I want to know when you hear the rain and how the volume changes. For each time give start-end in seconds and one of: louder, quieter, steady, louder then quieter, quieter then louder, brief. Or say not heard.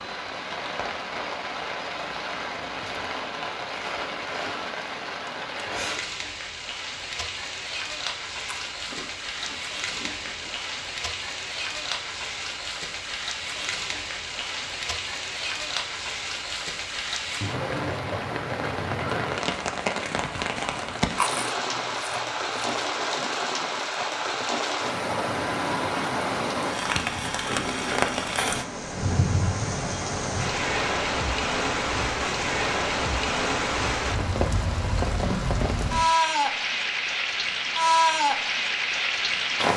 0.0-39.7 louder.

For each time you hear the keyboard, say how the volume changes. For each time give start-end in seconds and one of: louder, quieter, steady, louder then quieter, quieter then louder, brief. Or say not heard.
not heard.